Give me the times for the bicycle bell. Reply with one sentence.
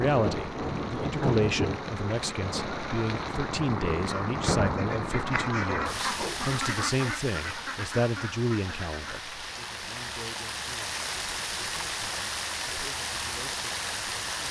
The bicycle bell can't be heard in this clip.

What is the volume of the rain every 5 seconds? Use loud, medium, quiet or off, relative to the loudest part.
loud, medium, loud.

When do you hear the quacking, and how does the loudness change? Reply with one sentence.
The quacking can be heard from 4.0 to 9.2 s, getting louder then quieter.